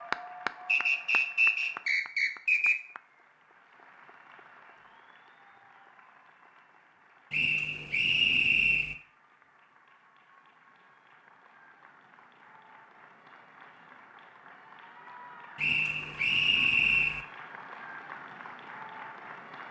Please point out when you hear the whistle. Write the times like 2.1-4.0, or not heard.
0.7-2.8, 7.3-8.9, 15.6-17.2.